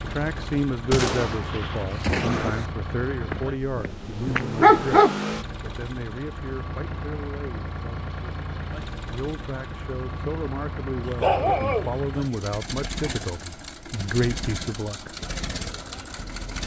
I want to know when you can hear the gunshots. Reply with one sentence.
You can hear the gunshots from 0.9 to 2.7 s.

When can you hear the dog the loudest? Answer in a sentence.
The loudest moment of the dog is at 5 seconds.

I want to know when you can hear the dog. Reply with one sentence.
You can hear the dog from 3.3 to 5.2 s and from 11.1 to 12.3 s.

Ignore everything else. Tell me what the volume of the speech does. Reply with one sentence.
The loudness of the speech goes down, then up.